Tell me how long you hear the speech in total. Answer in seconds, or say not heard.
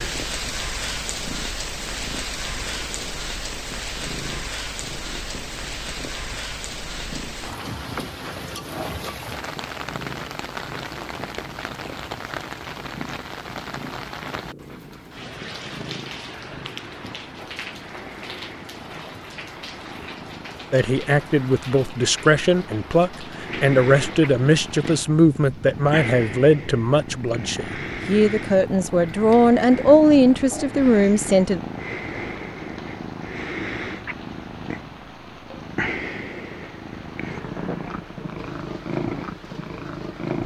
11 s.